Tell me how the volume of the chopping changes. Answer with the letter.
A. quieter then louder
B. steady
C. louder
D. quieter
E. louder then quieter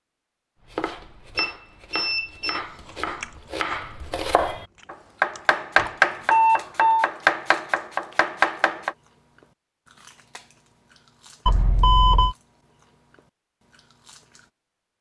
C.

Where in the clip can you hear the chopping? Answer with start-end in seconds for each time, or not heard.
0.7-8.9.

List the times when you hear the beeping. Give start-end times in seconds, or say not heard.
1.4-2.6, 5.8-7.0, 11.4-12.3.